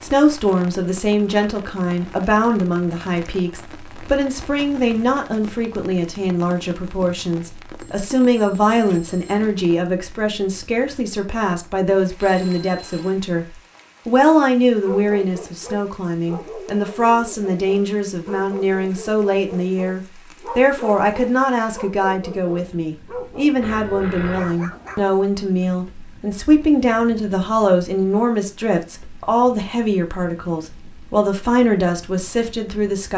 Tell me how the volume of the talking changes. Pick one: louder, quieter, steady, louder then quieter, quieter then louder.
steady.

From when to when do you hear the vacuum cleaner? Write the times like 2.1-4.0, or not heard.
not heard.